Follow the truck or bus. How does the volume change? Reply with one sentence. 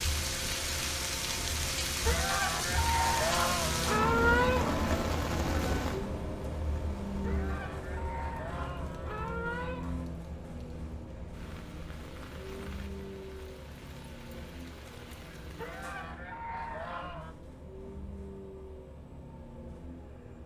The loudness of the truck or bus goes down.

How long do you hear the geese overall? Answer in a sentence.
You can hear the geese for 8 seconds altogether.